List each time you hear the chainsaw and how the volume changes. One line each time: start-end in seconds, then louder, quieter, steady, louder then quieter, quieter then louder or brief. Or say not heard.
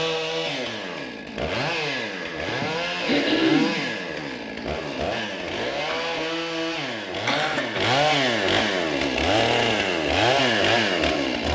0.0-11.4 louder.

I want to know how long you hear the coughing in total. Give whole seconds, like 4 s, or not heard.
3 s.